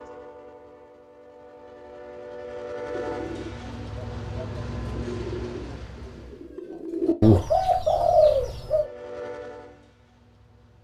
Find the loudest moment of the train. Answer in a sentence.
The volume of the train peaks at 3 seconds.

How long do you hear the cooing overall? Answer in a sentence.
You can hear the cooing for 6 seconds altogether.